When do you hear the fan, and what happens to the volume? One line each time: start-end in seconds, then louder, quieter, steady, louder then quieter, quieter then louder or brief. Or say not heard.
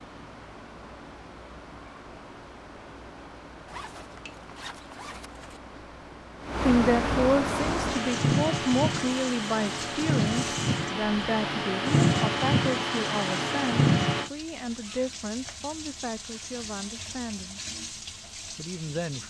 0.0-14.3 louder.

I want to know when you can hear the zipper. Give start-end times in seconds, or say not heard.
3.6-5.6, 14.6-15.6.